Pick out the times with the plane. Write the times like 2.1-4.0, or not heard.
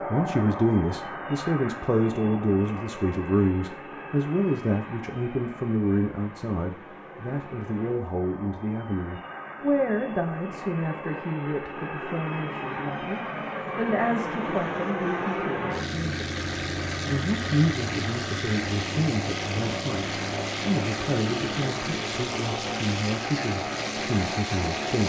0.0-25.0.